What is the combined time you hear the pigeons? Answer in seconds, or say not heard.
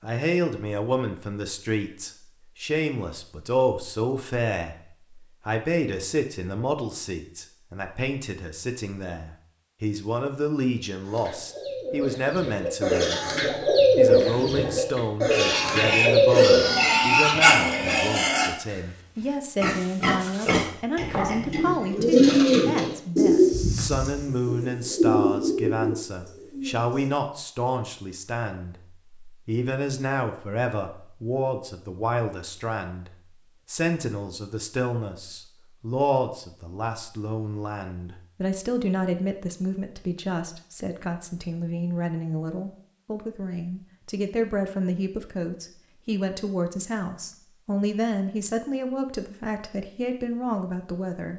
11 s.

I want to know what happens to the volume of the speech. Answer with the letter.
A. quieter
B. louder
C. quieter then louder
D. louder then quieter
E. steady
E.